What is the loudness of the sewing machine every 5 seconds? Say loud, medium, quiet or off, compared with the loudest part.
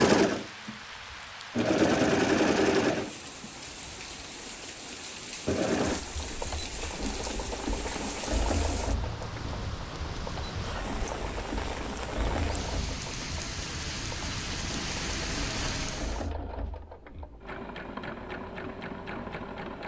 loud, medium, quiet, quiet.